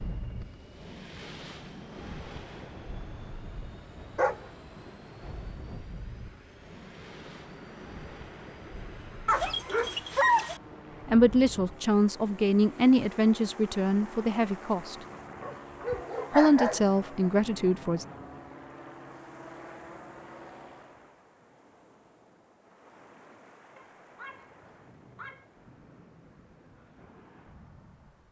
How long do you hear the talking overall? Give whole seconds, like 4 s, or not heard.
6 s.